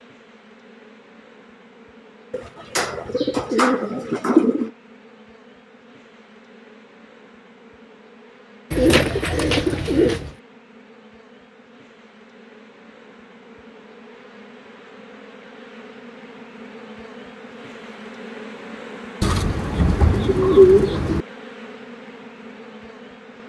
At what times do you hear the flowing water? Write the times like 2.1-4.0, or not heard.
not heard.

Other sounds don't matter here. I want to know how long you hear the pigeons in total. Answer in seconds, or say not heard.
6 s.